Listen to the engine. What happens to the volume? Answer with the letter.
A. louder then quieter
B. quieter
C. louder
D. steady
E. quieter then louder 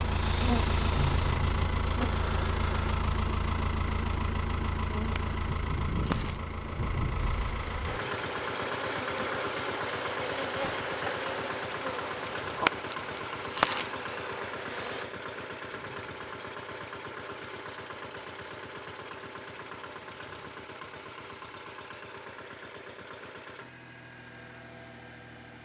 B.